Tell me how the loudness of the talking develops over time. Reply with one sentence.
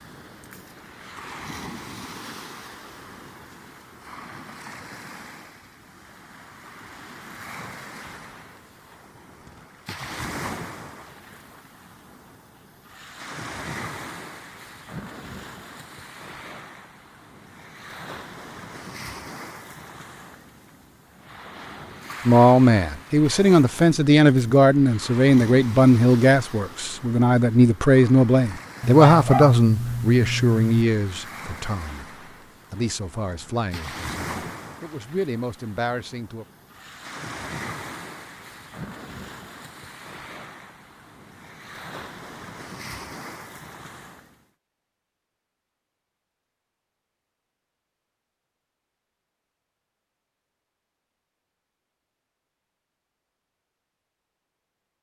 The loudness of the talking goes down.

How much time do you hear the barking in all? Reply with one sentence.
The barking can be heard for 2 seconds in total.